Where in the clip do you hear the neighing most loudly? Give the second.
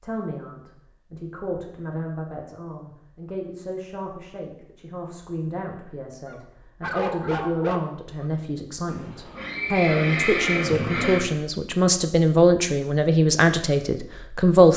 10 s.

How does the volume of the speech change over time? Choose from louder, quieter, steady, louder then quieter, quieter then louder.
louder.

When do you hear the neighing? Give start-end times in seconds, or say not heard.
8.8-11.3.